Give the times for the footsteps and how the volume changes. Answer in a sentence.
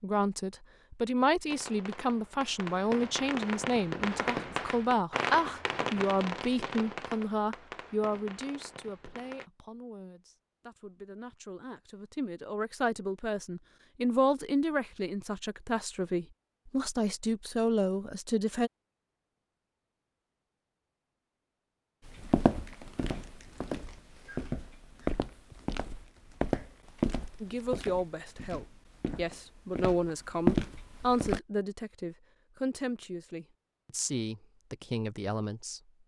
The footsteps can be heard from 22.1 to 31.4 s, getting quieter then louder.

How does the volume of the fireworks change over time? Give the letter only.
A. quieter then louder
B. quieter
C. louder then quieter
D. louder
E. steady
C.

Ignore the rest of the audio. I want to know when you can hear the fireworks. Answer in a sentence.
You can hear the fireworks from 1.4 to 9.5 s.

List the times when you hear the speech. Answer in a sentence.
You can hear the speech from 0.0 to 18.7 s and from 27.4 to 35.9 s.